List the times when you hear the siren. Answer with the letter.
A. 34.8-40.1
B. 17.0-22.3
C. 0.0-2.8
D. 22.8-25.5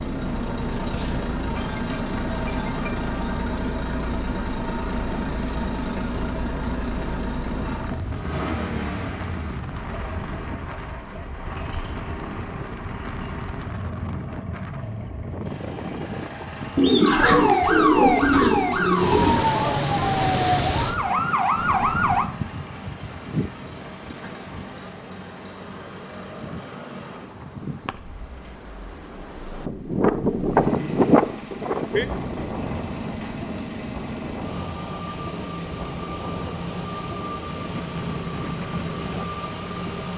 B.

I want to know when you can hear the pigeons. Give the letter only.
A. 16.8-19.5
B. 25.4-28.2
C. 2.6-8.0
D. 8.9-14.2
A.